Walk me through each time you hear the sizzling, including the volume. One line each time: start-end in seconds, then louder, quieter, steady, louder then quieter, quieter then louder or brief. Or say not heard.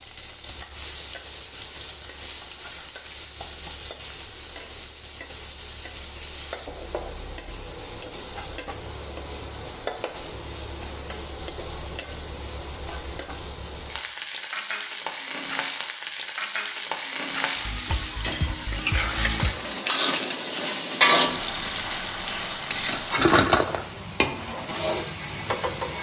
0.0-25.9 louder.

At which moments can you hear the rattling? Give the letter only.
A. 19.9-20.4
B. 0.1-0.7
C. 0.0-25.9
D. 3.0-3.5
A.